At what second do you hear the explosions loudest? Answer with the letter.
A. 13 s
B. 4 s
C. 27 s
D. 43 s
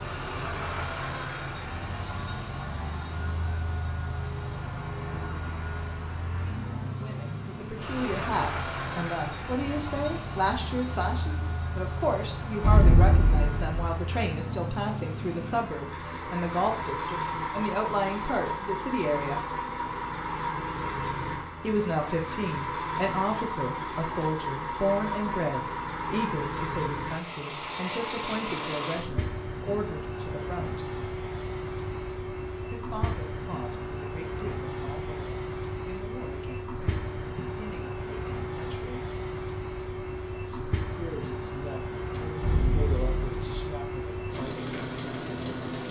A.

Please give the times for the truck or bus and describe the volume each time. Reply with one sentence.
The truck or bus can be heard from 0.0 to 45.8 s, at a steady volume.